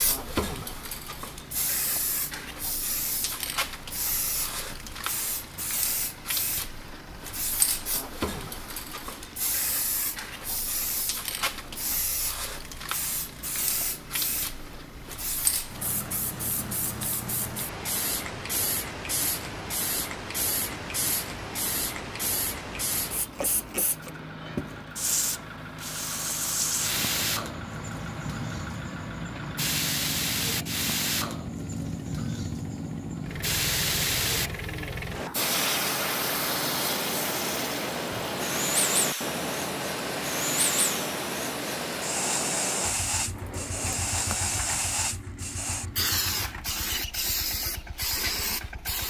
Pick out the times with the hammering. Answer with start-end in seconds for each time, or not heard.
not heard.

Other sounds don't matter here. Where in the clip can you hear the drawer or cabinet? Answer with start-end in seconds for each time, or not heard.
43.2-44.5.